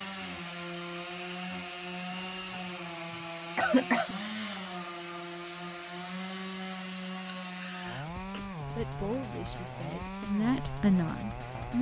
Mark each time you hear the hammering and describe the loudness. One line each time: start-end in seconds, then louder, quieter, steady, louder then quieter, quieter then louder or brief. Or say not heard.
not heard.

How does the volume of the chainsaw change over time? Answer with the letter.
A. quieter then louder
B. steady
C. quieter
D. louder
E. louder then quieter
B.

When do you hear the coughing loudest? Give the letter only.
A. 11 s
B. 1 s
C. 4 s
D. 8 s
C.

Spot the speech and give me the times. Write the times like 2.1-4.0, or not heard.
8.7-11.7.